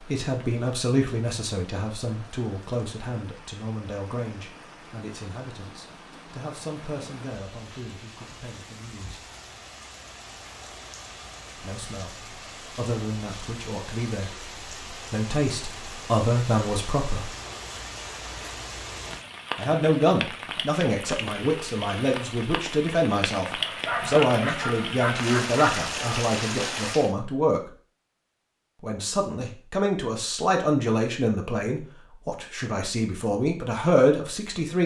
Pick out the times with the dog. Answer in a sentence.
The dog can be heard from 23.6 to 25.9 s.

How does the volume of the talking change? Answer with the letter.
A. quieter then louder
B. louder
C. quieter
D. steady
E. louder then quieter
A.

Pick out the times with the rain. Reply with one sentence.
The rain can be heard from 0.0 to 27.1 s.